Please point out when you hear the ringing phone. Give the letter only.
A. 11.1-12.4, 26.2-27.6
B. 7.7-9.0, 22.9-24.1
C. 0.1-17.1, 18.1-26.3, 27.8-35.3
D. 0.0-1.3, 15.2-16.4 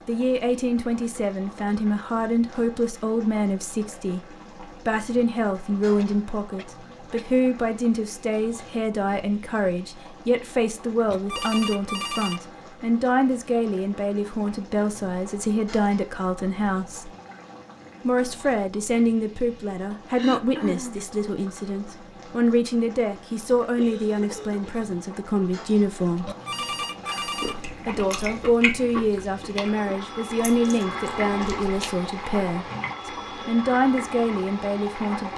A.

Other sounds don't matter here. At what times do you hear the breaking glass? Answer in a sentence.
You can't hear the breaking glass here.